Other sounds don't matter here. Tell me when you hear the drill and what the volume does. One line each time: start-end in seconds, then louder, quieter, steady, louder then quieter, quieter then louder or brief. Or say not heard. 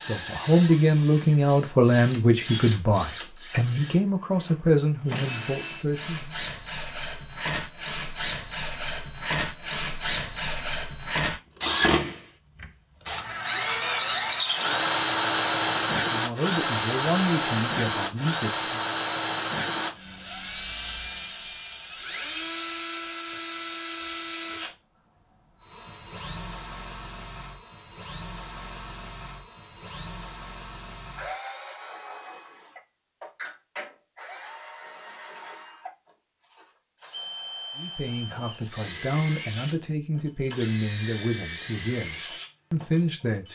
0.0-43.5 louder then quieter.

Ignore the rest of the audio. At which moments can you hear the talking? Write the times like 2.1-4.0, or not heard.
0.0-6.3, 15.9-18.9, 37.8-43.5.